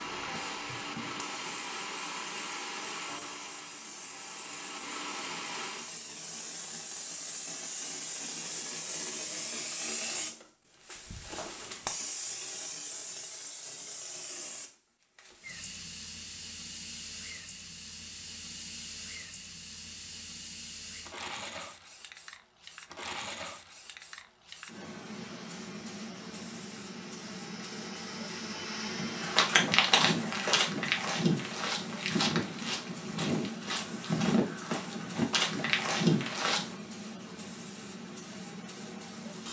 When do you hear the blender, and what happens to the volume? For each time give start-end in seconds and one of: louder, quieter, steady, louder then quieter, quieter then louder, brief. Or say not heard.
0.0-6.0 quieter then louder
25.2-29.5 louder.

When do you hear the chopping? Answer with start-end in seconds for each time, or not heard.
not heard.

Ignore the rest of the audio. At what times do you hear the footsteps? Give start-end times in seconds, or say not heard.
28.9-36.8.